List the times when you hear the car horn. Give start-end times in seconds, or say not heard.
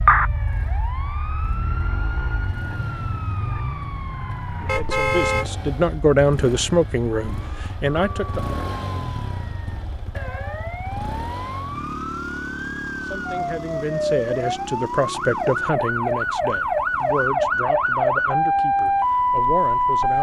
4.7-5.7.